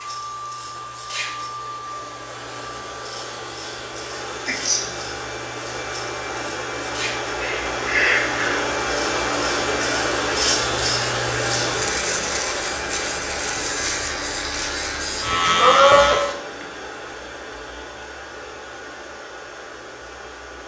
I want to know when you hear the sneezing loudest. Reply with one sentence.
The loudest moment of the sneezing is at 16 seconds.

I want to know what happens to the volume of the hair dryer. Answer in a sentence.
The loudness of the hair dryer goes up, then down.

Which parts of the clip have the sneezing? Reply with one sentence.
You can hear the sneezing from 4.5 to 4.9 s, from 7.4 to 8.7 s and from 15.3 to 16.6 s.